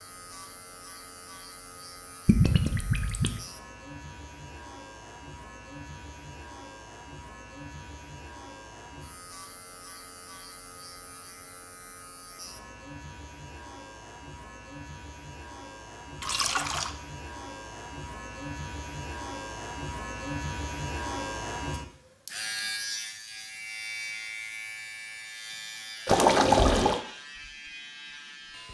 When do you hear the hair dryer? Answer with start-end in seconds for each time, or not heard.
not heard.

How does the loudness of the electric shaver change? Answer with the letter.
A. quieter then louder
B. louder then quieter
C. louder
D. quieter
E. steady
C.